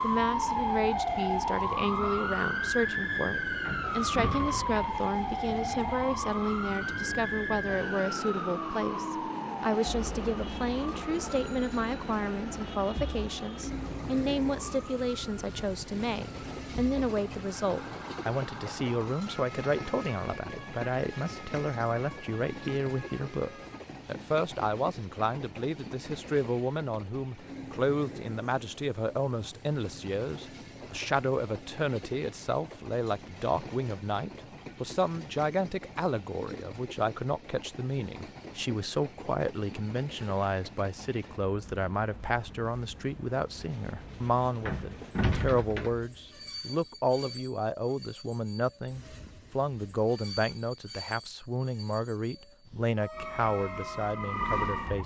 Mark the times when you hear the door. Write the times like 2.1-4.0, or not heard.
3.6-4.8, 44.6-46.0.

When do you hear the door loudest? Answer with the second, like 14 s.
45 s.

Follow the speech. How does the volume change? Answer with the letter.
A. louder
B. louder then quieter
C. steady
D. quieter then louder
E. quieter
C.